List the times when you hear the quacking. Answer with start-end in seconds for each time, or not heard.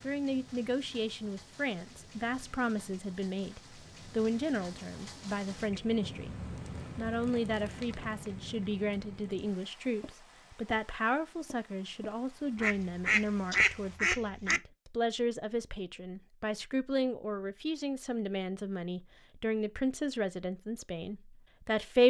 12.6-14.6.